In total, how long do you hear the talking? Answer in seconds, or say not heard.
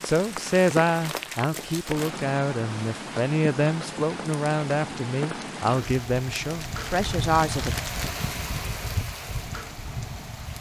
8 s.